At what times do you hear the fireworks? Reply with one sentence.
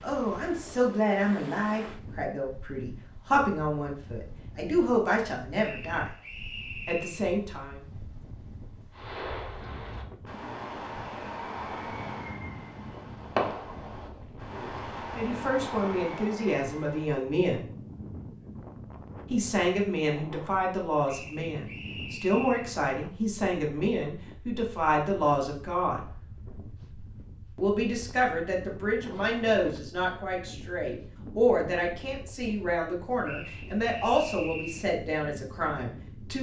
You can hear the fireworks from 8.9 to 17.2 s.